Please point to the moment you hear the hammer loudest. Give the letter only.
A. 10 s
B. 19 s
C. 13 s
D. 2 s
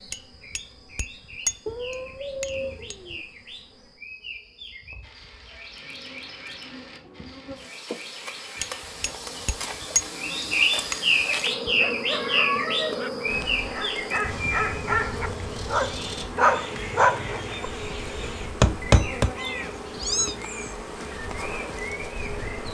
B.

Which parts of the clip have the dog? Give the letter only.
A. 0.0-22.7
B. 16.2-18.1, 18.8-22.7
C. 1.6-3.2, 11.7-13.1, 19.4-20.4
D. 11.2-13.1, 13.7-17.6
D.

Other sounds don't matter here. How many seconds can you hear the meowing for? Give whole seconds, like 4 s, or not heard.
4 s.